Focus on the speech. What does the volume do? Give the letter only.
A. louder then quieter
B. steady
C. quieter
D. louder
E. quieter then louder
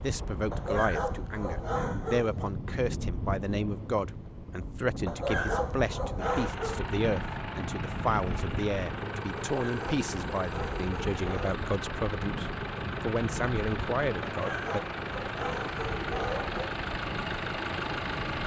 B.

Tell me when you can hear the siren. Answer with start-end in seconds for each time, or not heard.
not heard.